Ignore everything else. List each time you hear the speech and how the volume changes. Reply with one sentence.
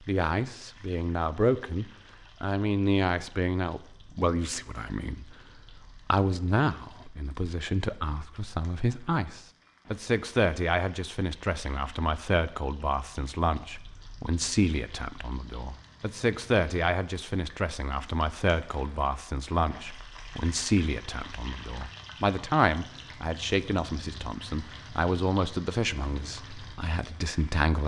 You can hear the speech from 0.1 to 27.8 s, at a steady volume.